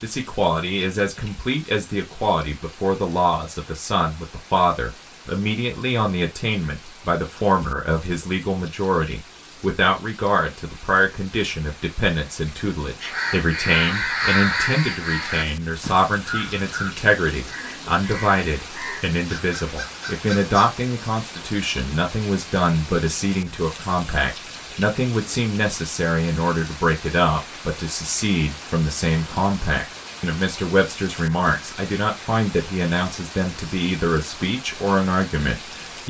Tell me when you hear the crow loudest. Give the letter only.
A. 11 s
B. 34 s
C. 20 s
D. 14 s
D.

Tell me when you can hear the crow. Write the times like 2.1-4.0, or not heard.
13.0-20.8.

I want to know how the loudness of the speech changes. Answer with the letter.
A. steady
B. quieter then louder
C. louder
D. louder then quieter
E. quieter
A.